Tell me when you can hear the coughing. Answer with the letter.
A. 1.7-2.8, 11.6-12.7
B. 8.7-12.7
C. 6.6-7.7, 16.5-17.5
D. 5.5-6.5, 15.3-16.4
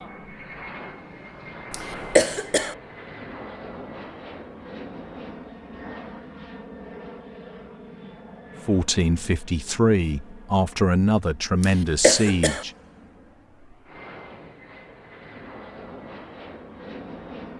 A.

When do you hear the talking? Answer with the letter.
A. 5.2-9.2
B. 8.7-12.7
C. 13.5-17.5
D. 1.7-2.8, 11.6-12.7
B.